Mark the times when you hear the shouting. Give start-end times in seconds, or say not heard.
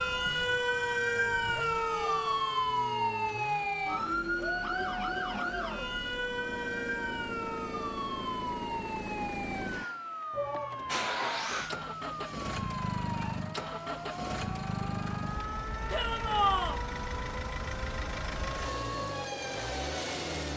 1.5-2.5, 10.3-11.4, 15.9-16.8.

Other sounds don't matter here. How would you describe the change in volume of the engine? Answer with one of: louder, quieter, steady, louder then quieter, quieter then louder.
louder.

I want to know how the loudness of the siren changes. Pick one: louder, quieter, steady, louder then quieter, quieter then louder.
quieter.